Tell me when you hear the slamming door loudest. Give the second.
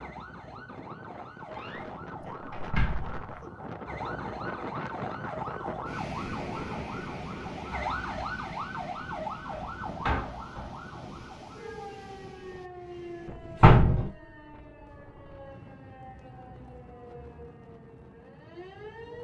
14 s.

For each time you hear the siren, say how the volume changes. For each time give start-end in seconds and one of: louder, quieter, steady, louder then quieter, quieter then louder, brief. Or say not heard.
0.0-19.1 louder then quieter.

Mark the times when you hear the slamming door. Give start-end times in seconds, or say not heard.
1.6-3.1, 9.5-10.8, 13.6-14.1.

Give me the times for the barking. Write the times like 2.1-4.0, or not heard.
not heard.